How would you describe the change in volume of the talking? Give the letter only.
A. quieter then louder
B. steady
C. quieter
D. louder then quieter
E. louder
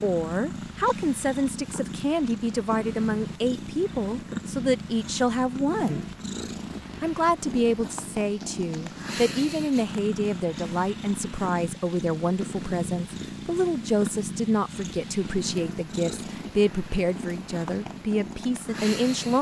B.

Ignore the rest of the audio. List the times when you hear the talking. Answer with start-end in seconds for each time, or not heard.
0.0-6.0, 7.0-19.3.